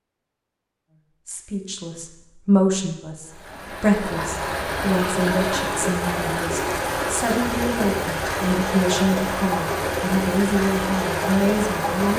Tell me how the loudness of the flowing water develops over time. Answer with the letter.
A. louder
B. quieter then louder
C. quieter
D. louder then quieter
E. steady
E.